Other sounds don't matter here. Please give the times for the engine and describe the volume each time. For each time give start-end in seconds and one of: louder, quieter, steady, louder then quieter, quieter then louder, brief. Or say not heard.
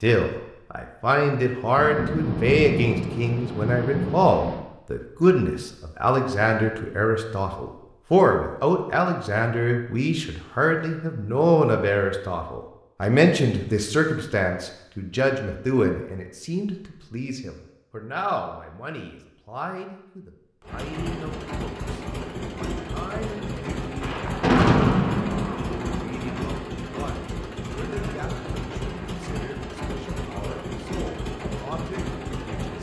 20.6-32.7 steady.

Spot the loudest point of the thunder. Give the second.
25 s.